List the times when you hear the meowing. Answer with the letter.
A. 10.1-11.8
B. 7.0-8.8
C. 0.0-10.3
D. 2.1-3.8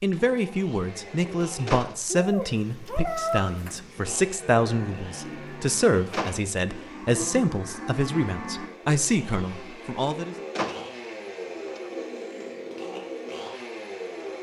D.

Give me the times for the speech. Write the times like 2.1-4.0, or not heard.
0.0-10.3.